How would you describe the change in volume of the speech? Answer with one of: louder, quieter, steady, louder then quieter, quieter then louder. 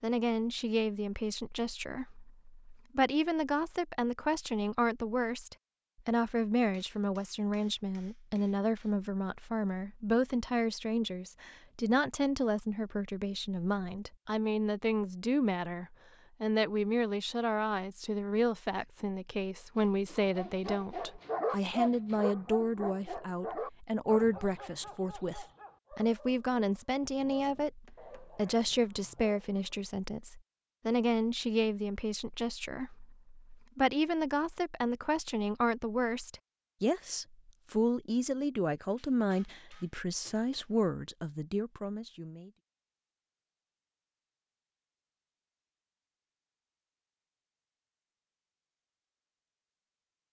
steady.